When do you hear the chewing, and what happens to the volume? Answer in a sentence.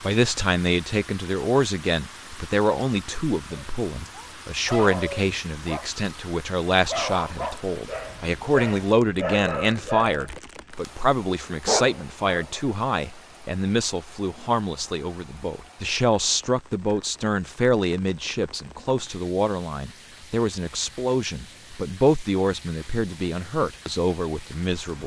You can't hear the chewing here.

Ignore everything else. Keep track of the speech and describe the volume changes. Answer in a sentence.
The volume of the speech stays about the same.